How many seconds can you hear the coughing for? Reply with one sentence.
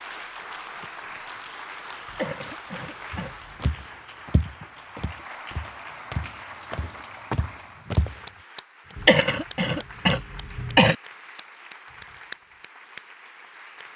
The coughing can be heard for 4 seconds in total.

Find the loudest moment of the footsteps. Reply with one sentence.
The volume of the footsteps peaks at 8 seconds.